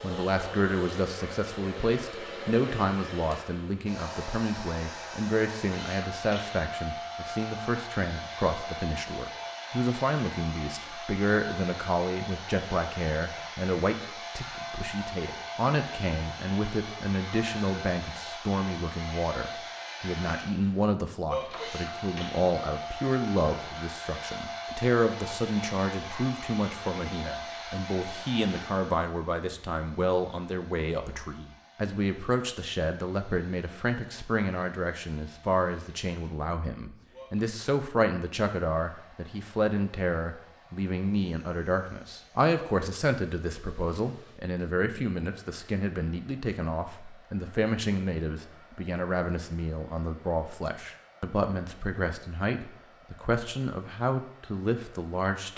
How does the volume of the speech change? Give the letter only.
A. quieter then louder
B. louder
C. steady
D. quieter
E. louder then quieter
C.